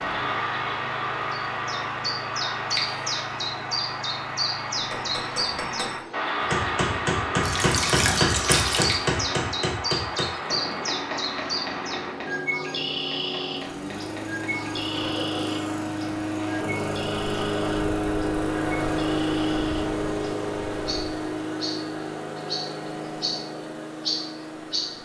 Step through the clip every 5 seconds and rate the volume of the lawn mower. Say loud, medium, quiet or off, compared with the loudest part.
quiet, quiet, medium, loud, medium.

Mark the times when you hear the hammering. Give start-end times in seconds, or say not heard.
4.8-15.2.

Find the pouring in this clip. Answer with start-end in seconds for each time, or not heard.
7.4-9.1.